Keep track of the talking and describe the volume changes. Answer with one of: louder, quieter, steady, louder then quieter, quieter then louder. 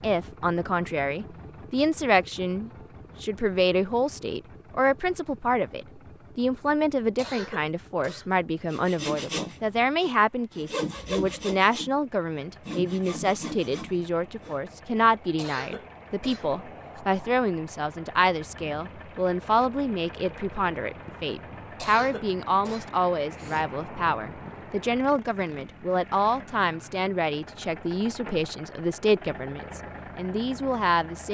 steady.